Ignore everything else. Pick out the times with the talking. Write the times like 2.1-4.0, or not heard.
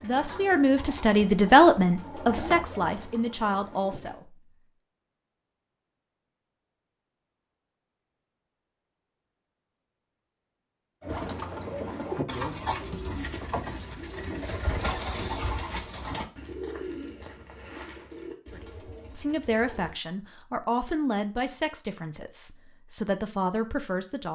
0.0-4.5, 18.5-24.2.